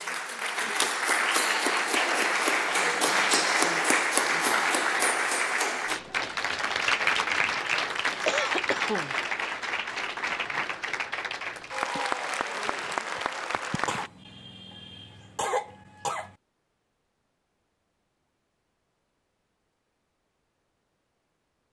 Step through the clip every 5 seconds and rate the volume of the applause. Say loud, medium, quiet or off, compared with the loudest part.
loud, loud, medium, off, off.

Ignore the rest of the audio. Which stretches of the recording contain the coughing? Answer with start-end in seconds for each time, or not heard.
8.2-9.2, 13.8-16.4.